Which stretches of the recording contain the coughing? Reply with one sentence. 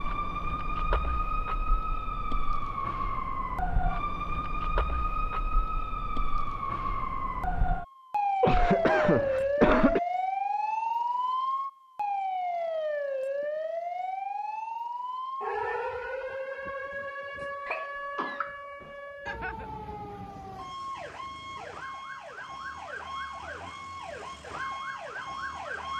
The coughing can be heard from 8.4 to 10.0 s and from 17.6 to 18.5 s.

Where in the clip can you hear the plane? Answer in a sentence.
You can't hear the plane here.